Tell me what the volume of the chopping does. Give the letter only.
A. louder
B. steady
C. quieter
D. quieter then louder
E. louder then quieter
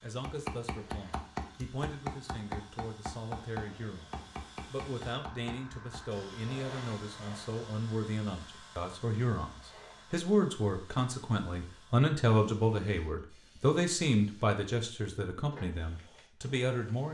C.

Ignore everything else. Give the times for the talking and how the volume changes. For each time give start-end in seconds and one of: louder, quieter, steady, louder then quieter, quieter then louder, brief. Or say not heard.
0.0-17.0 louder.